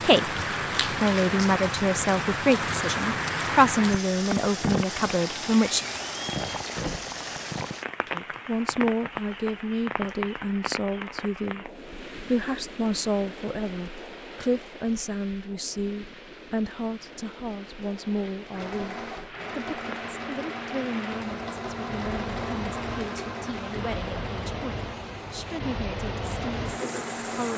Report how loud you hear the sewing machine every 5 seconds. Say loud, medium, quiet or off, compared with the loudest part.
off, off, off, loud, loud, loud.